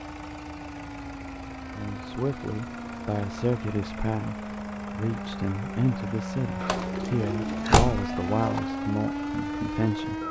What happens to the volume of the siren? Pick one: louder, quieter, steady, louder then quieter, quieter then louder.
louder.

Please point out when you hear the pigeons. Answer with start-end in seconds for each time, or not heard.
6.6-8.6.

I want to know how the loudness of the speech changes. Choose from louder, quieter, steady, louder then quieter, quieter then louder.
steady.